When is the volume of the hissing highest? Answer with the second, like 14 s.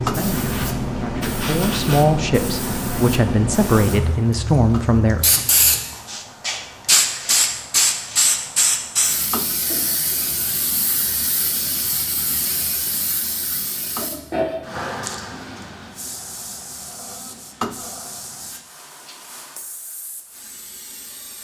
7 s.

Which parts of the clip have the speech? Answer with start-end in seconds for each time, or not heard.
0.0-5.4.